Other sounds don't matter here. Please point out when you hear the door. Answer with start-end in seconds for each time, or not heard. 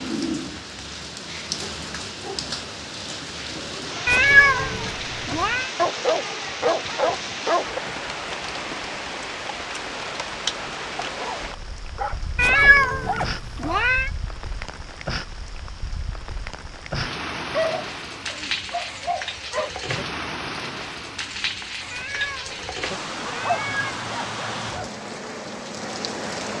not heard.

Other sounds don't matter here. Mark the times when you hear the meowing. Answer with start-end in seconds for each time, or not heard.
4.0-5.7, 12.3-14.1, 21.9-24.0.